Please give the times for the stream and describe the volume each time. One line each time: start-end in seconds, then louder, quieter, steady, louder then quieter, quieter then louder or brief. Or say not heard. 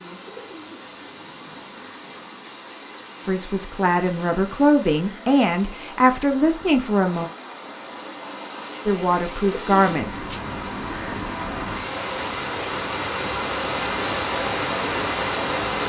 0.0-15.8 louder.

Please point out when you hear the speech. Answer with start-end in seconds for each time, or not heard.
3.2-7.3, 8.8-10.2.